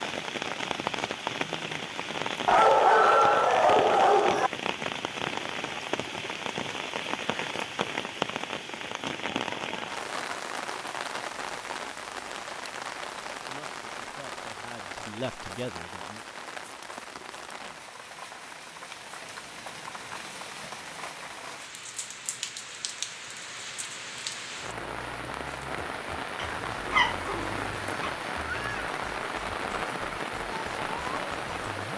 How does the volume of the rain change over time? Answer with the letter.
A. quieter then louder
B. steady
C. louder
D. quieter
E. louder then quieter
A.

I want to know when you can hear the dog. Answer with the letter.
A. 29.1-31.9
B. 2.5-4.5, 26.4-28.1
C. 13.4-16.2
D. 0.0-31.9
B.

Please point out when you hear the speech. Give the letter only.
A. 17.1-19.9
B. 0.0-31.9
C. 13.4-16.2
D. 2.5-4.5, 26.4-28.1
C.